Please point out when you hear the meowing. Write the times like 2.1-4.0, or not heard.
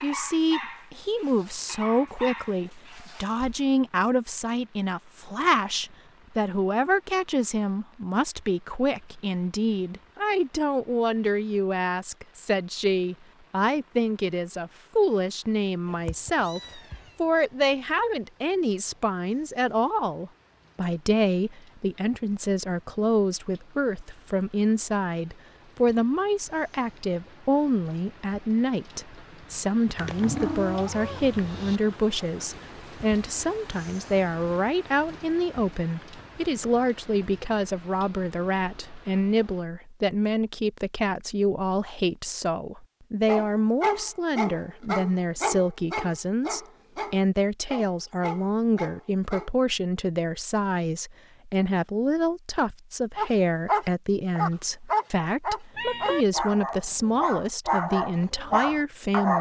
15.8-17.1, 29.9-31.8, 55.8-56.2.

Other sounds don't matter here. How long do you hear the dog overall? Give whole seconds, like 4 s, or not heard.
16 s.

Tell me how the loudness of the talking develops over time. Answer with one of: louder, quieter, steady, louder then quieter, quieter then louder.
steady.